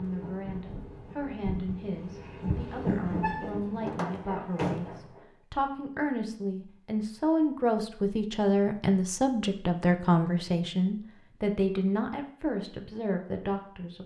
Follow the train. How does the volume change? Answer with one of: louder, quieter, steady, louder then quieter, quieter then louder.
louder then quieter.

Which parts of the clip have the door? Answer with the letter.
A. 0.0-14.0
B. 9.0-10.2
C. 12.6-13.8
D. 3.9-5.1
D.